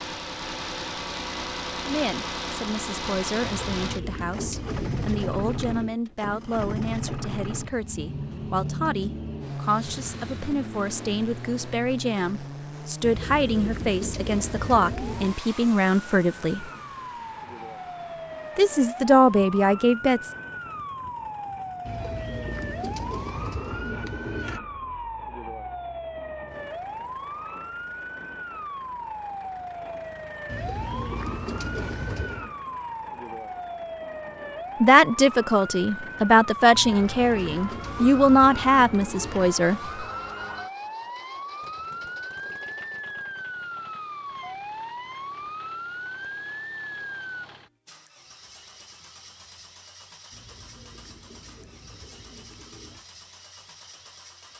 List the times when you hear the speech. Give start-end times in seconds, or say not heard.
1.9-16.7, 18.6-20.3, 34.8-39.9.